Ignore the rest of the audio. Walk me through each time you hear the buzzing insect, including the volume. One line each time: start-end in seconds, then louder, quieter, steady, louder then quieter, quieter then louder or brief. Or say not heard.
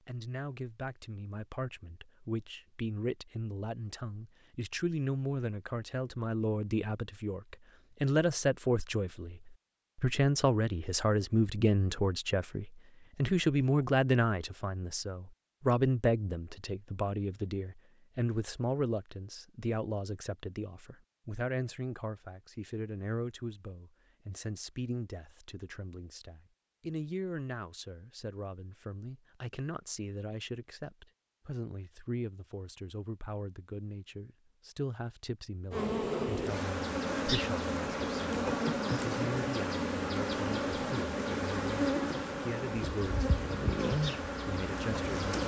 35.7-45.4 steady.